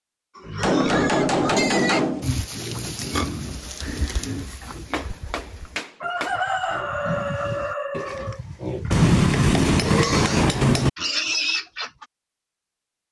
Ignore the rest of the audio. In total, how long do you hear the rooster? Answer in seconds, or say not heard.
4 s.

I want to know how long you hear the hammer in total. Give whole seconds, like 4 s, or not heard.
5 s.